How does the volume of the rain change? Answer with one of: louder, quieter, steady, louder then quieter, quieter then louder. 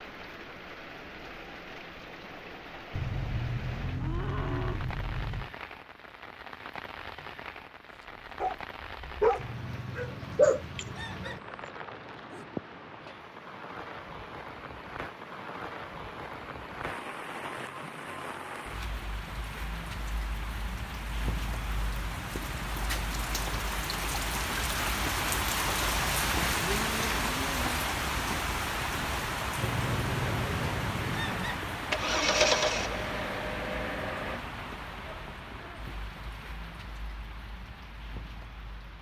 louder then quieter.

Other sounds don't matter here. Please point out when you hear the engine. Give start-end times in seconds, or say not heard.
29.8-34.4.